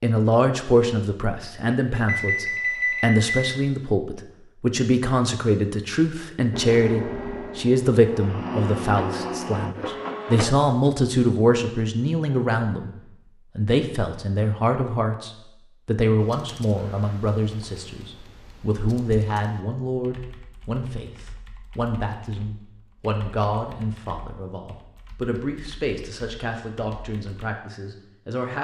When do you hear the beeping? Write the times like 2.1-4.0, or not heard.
1.9-3.4.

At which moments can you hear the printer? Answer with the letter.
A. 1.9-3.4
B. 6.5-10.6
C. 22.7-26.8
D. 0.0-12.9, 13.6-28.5
B.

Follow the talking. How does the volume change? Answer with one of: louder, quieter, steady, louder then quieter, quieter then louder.
quieter.